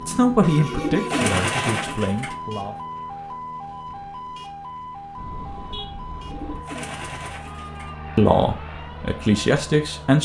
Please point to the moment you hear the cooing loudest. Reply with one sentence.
The volume of the cooing peaks at 1 second.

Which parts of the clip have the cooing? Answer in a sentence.
You can hear the cooing from 0.7 to 2.4 s and from 6.3 to 8.0 s.